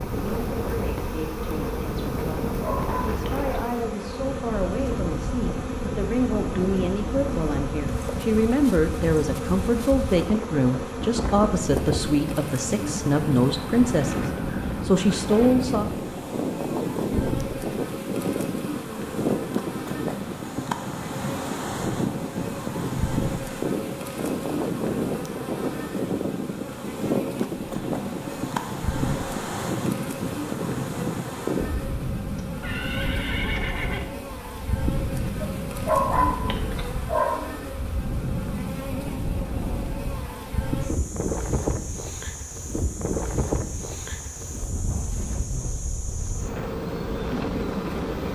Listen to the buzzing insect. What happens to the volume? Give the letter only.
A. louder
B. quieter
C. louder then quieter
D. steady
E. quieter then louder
D.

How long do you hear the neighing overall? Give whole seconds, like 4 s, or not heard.
2 s.